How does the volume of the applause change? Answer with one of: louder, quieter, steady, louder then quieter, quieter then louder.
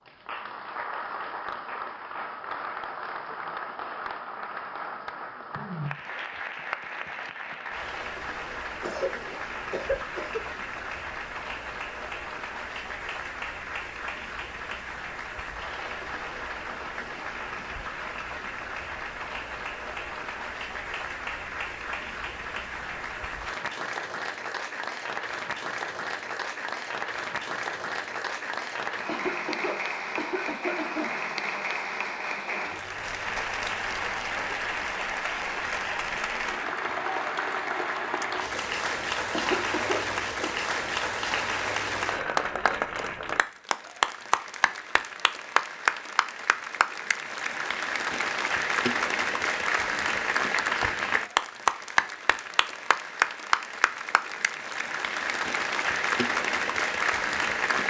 louder.